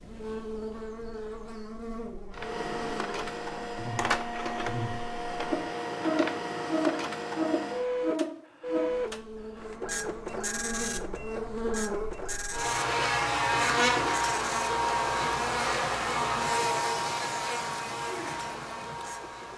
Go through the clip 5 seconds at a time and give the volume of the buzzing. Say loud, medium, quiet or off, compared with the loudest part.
medium, loud, loud, loud.